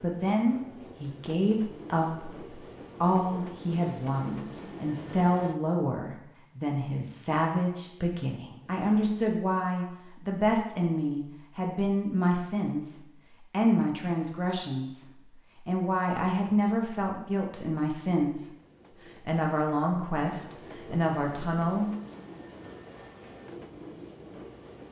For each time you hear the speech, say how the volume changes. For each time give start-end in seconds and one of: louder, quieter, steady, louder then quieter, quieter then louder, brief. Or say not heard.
0.0-18.5 steady
19.2-21.9 brief.